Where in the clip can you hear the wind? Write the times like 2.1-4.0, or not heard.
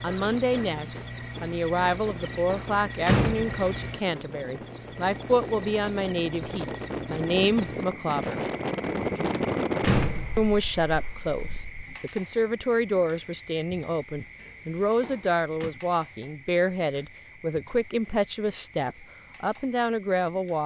0.1-11.9.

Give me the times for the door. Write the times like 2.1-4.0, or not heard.
1.9-3.5, 8.6-10.6, 14.3-15.8.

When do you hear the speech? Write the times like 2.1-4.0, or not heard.
0.0-8.4, 10.3-20.6.